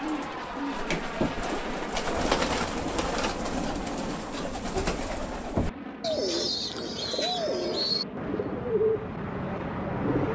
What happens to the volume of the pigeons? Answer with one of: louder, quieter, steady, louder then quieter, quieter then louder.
steady.